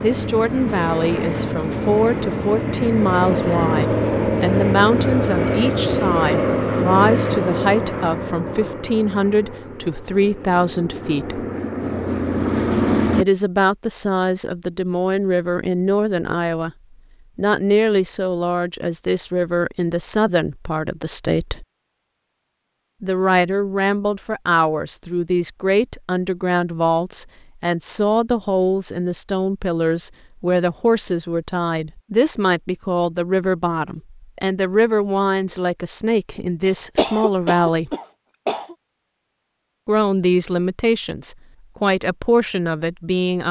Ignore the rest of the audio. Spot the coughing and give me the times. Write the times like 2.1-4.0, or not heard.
36.6-38.8.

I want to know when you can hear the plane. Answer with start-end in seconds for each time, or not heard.
0.0-13.2.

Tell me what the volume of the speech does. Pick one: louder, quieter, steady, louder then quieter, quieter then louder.
steady.